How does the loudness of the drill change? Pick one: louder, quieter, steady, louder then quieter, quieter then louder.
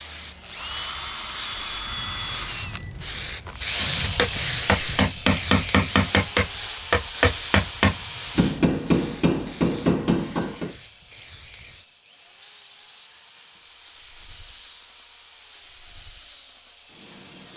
quieter.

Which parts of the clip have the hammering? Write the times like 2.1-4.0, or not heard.
3.8-10.8.